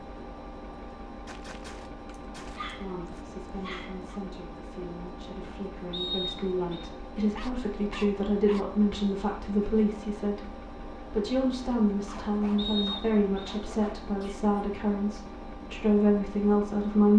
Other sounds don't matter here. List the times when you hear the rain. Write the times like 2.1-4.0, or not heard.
not heard.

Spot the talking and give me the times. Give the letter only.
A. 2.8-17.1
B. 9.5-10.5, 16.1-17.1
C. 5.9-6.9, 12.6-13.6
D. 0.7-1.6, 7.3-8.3
A.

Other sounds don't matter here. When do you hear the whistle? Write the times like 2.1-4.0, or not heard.
5.9-6.9, 12.6-13.6.